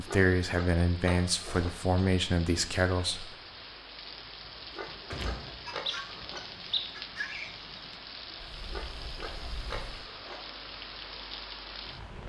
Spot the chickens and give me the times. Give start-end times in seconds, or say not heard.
5.7-8.0.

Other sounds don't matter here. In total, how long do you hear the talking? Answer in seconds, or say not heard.
3 s.